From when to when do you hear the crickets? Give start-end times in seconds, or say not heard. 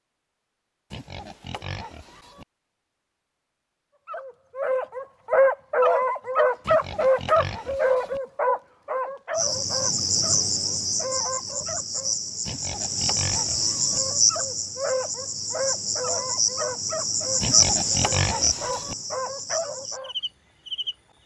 9.3-20.9.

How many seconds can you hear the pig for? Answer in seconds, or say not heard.
6 s.